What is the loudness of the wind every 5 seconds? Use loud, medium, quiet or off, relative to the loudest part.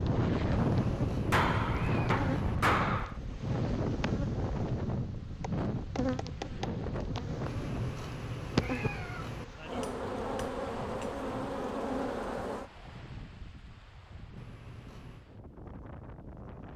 loud, medium, quiet, quiet.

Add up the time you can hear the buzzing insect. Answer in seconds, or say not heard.
13 s.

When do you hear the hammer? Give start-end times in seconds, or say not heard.
1.3-3.1, 9.8-11.1.